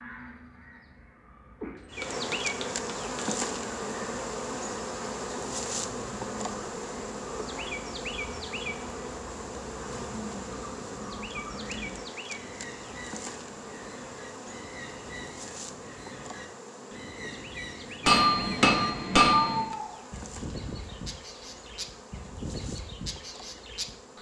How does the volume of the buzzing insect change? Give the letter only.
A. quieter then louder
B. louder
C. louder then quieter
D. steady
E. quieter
E.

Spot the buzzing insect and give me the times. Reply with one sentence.
You can hear the buzzing insect from 1.9 to 24.1 s.